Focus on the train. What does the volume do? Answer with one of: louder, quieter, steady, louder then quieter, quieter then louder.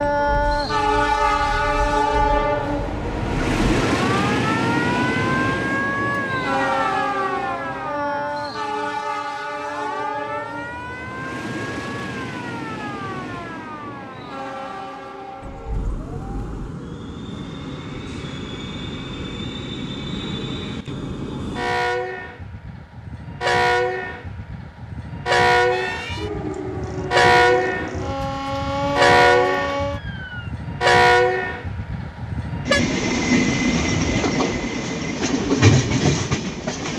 quieter then louder.